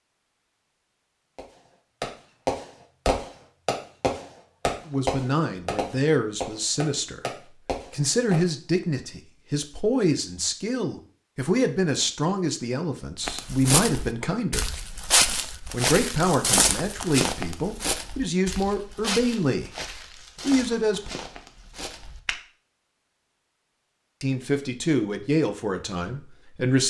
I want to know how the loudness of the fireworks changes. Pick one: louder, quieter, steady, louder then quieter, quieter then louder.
quieter.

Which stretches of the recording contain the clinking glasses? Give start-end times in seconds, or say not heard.
not heard.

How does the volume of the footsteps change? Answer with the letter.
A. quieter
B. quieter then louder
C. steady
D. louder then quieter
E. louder
A.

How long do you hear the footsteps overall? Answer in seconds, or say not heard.
9 s.